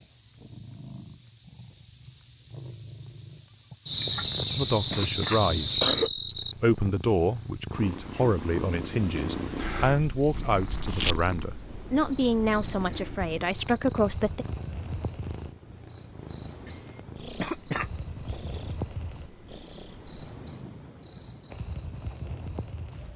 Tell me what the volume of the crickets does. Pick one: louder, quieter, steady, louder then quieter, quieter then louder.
quieter.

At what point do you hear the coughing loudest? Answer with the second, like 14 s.
6 s.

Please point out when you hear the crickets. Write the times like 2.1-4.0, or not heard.
0.0-23.1.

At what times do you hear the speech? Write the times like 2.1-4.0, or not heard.
4.5-5.8, 6.6-14.4.